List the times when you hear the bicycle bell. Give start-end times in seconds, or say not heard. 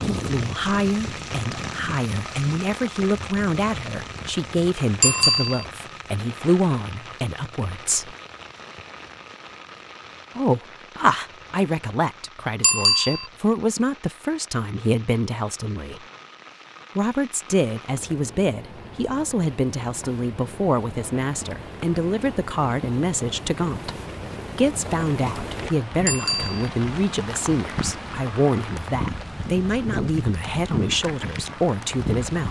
5.0-5.7, 12.6-13.2, 26.1-26.7.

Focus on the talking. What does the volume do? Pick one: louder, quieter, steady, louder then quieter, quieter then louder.
steady.